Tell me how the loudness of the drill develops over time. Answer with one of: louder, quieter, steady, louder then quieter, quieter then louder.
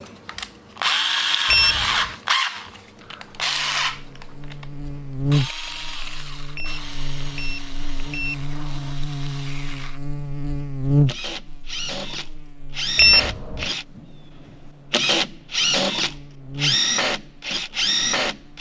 quieter then louder.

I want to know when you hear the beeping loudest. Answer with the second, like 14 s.
13 s.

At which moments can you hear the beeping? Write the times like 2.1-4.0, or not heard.
1.4-2.1, 6.5-8.9, 12.9-13.7.